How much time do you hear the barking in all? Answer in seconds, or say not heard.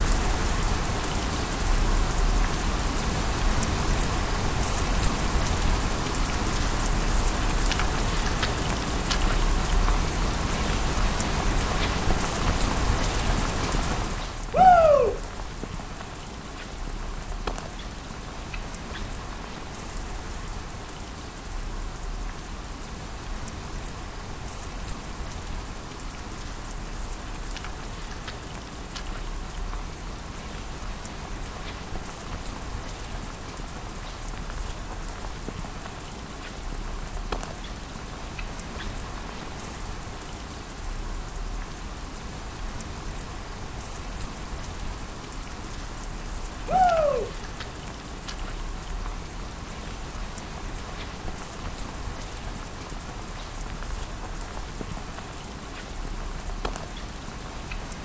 not heard.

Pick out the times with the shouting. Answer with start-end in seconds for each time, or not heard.
14.5-15.1, 46.6-47.2.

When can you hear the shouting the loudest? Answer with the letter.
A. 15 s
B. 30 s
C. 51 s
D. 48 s
A.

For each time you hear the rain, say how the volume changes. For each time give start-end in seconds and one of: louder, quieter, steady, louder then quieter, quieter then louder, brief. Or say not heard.
0.0-57.9 quieter.